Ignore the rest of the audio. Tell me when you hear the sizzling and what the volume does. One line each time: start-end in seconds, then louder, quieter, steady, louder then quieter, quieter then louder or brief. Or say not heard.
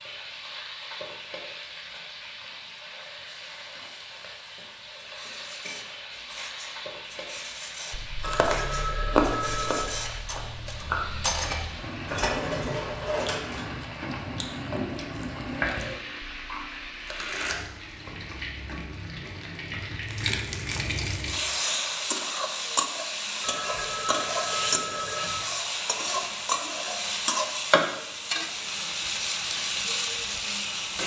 0.0-31.0 louder.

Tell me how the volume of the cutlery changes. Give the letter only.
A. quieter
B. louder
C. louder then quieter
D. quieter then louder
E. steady
B.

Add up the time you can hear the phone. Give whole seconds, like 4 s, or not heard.
4 s.